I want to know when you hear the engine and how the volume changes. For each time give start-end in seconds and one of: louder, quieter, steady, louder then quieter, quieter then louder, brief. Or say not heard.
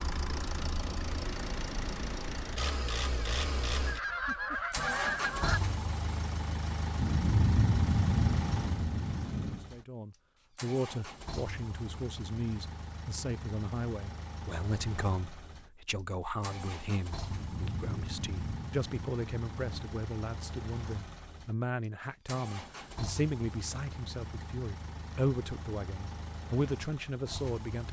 0.0-27.8 quieter.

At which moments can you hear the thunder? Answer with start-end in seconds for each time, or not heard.
7.0-9.7, 17.2-19.9.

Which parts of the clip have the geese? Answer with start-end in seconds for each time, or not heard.
3.8-5.6.